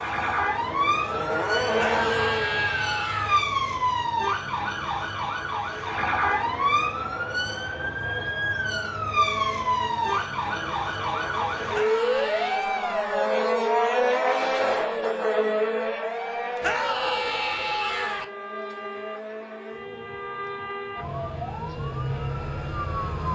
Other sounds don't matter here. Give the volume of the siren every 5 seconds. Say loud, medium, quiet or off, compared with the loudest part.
loud, loud, loud, medium, medium.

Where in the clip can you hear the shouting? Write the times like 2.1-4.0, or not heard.
1.8-3.5, 11.7-12.7, 16.6-18.2.